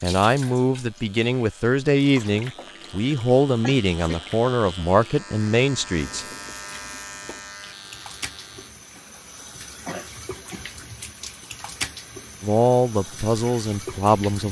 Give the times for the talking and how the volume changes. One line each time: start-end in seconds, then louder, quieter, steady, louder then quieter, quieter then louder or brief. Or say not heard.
0.0-6.2 steady
12.4-14.4 brief.